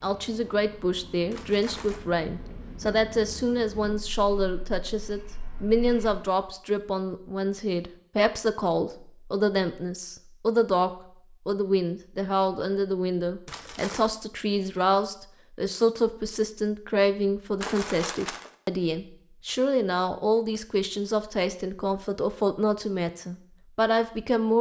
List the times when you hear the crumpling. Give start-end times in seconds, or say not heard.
1.3-2.0, 13.4-14.1, 17.6-18.5.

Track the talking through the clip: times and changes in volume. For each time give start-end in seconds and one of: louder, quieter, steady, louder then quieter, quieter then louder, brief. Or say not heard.
0.0-24.5 steady.